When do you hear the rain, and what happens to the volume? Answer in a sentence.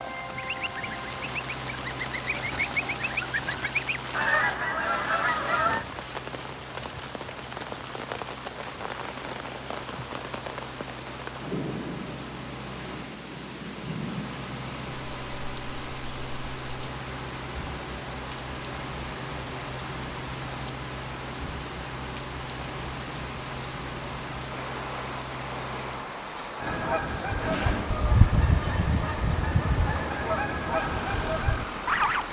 You can hear the rain from 0.0 to 32.2 s, at a steady volume.